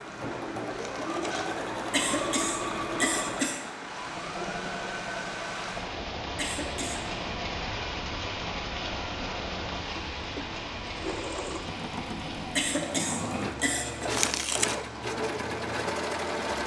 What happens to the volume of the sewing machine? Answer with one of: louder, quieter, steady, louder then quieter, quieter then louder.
quieter then louder.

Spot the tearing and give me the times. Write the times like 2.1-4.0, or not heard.
0.7-1.5, 14.1-14.8.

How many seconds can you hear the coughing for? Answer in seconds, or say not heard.
4 s.